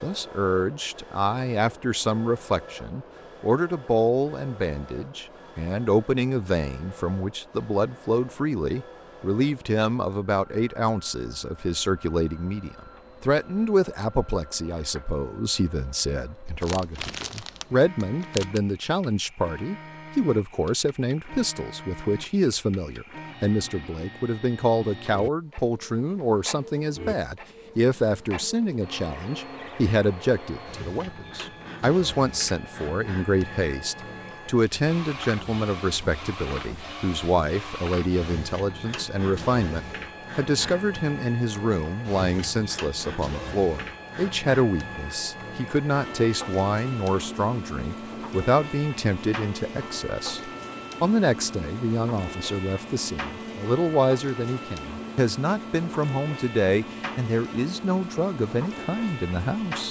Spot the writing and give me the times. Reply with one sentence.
The writing can't be heard in this clip.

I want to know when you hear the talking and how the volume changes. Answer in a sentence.
You can hear the talking from 0.0 to 59.8 s, at a steady volume.